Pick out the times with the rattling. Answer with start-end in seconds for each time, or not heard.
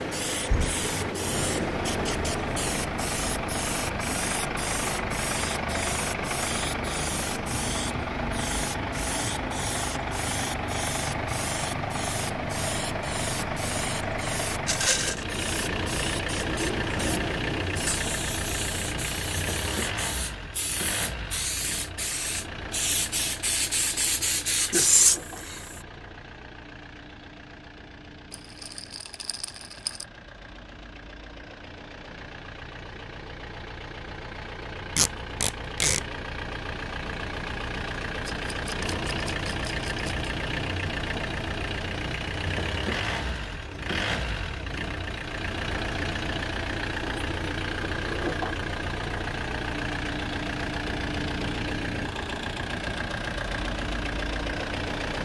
14.7-15.2, 28.3-30.1, 38.2-40.3.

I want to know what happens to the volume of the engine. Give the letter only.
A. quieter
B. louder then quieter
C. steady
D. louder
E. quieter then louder
E.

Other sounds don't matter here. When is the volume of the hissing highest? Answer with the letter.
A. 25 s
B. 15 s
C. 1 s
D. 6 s
A.